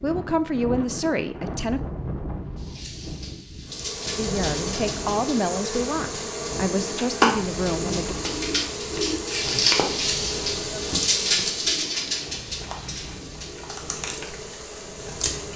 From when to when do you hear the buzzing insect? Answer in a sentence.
The buzzing insect can be heard from 3.6 to 15.5 s.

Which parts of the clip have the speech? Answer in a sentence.
The speech can be heard from 0.0 to 1.8 s and from 4.2 to 8.2 s.